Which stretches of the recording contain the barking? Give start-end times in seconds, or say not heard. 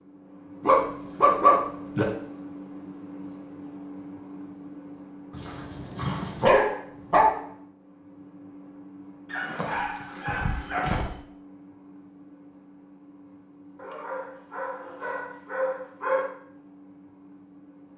0.6-2.0, 5.3-7.3, 9.3-11.2, 13.8-16.3.